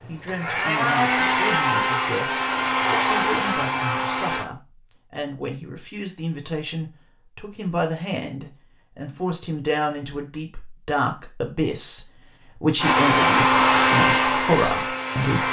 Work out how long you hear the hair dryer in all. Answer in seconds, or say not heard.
7 s.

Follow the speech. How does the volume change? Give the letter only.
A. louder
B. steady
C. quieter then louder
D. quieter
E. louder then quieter
A.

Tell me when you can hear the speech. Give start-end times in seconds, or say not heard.
0.1-15.4.